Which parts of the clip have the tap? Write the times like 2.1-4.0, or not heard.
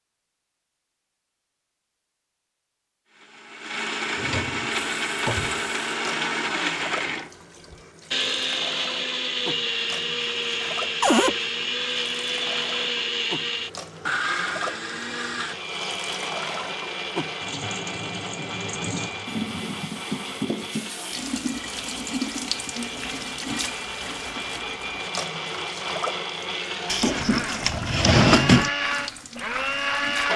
4.7-30.3.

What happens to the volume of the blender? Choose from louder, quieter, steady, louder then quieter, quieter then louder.
quieter then louder.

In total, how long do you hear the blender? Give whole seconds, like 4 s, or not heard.
27 s.